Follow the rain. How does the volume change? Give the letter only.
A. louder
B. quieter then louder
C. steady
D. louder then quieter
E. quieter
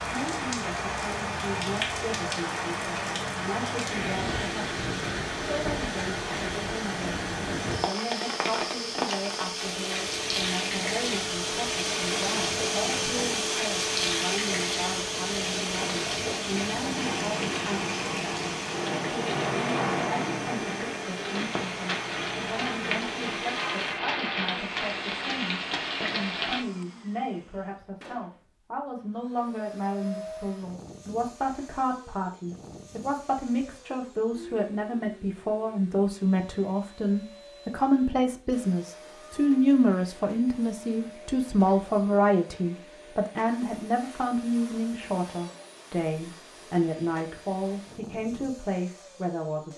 C.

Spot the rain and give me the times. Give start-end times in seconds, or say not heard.
0.0-26.6.